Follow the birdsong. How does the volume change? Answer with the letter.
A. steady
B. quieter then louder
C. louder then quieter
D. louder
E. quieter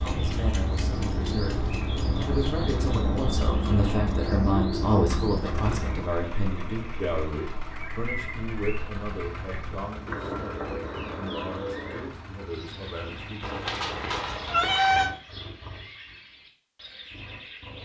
E.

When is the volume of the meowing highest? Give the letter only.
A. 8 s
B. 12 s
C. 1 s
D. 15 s
D.